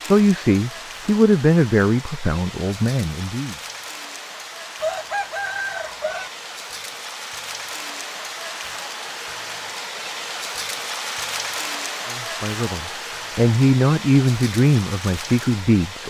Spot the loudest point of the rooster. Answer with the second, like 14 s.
5 s.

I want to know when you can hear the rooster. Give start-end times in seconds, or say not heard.
4.8-6.3.